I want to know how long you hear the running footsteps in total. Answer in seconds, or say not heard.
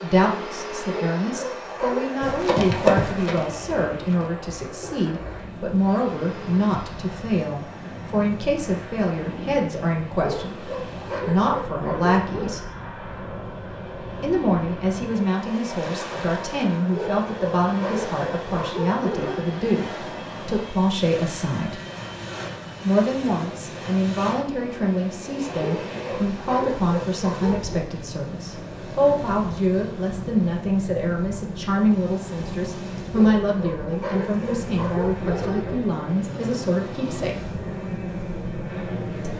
2 s.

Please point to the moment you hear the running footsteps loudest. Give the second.
3 s.